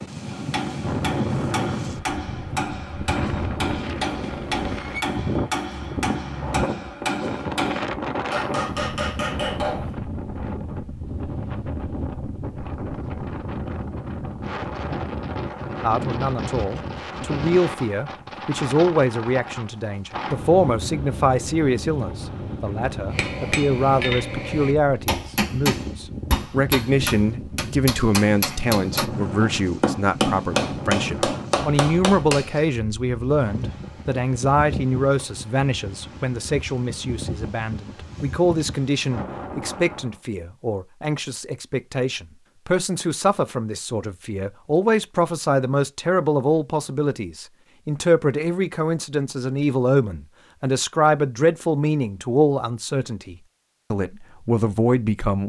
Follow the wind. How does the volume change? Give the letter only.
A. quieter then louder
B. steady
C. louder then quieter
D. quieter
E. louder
D.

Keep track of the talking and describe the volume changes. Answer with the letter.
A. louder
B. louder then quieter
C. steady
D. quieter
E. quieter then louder
C.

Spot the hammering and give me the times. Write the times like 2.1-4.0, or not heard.
0.2-9.9, 23.1-32.6.